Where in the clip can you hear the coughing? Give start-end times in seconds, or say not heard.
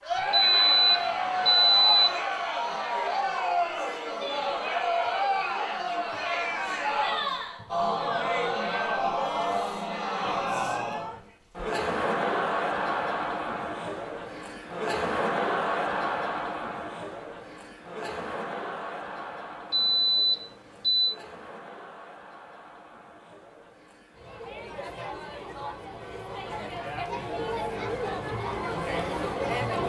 not heard.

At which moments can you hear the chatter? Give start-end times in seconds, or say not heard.
0.0-29.8.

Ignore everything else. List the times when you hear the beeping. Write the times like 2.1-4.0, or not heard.
0.3-2.2, 19.7-21.1.